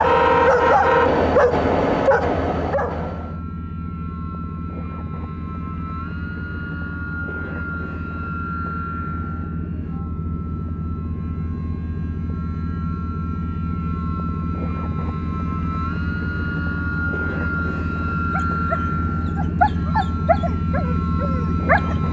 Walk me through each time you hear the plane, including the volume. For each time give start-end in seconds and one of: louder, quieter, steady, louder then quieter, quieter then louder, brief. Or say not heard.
0.0-22.0 louder.